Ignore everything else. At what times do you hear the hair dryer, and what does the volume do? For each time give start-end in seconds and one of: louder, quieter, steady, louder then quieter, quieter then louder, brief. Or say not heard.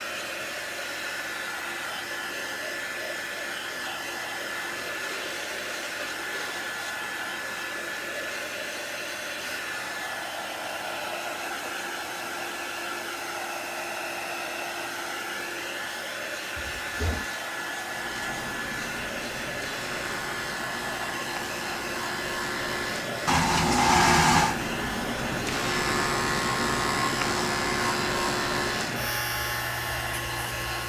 0.0-30.8 steady.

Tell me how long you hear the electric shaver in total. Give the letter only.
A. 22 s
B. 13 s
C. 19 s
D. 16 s
B.